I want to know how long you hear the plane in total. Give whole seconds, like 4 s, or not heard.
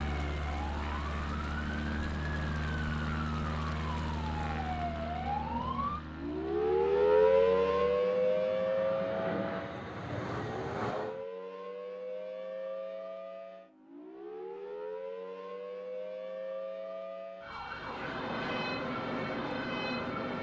14 s.